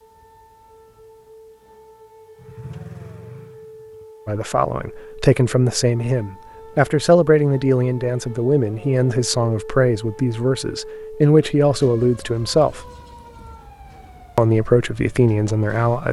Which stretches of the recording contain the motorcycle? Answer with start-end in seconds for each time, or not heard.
2.4-4.2.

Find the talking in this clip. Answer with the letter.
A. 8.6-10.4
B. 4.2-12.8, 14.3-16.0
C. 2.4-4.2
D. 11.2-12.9
B.